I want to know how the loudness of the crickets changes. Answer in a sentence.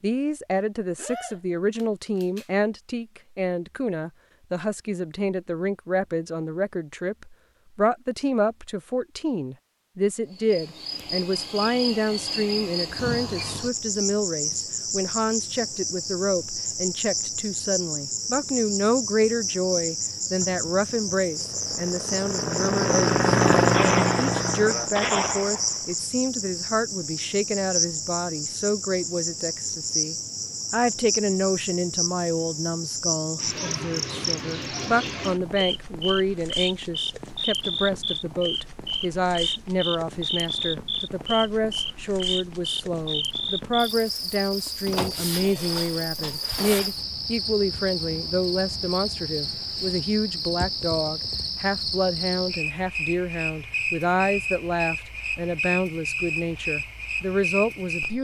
The loudness of the crickets stays about the same.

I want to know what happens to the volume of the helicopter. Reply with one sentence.
The loudness of the helicopter goes up, then down.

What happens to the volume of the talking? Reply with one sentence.
The volume of the talking stays about the same.